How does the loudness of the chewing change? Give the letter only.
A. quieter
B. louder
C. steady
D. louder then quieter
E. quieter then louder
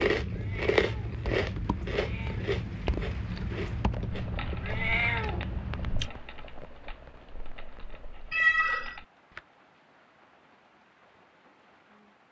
A.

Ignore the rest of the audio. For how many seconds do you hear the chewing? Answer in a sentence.
The chewing can be heard for 6 seconds in total.